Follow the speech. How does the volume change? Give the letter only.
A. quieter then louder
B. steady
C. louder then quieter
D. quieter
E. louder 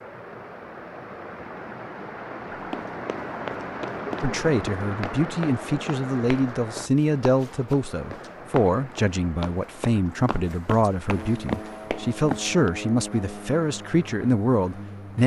B.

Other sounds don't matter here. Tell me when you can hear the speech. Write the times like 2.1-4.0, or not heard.
4.2-15.2.